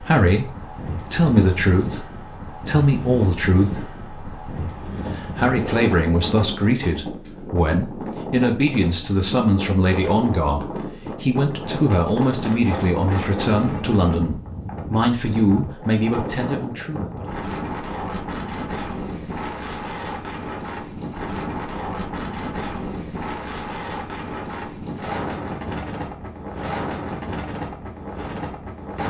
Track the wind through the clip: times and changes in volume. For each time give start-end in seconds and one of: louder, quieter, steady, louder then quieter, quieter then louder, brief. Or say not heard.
0.0-29.0 steady.